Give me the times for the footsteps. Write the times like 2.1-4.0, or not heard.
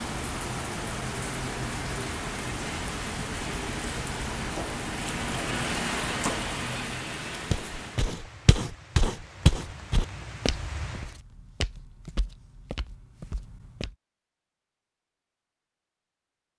7.5-13.9.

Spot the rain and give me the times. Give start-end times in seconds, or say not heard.
0.0-11.2.